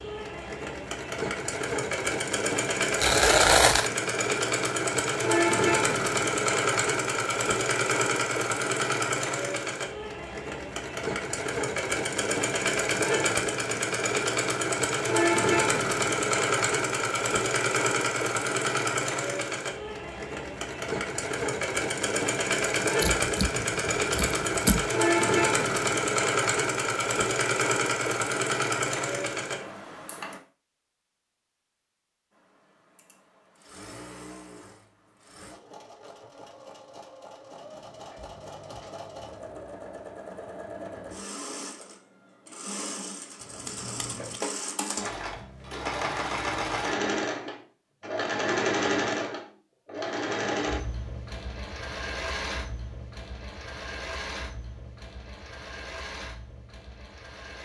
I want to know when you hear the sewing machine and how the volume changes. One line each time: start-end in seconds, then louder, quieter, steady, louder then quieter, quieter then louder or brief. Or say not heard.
0.0-30.4 steady
32.3-57.5 louder then quieter.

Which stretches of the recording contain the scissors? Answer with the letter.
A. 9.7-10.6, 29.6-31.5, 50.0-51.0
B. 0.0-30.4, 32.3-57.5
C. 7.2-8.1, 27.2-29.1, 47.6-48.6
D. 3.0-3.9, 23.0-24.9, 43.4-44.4
D.